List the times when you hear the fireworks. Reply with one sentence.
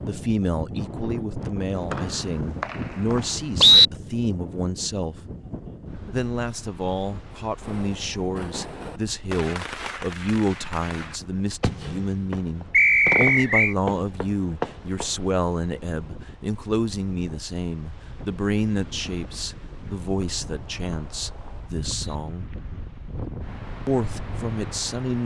The fireworks can be heard from 7.6 to 15.3 s.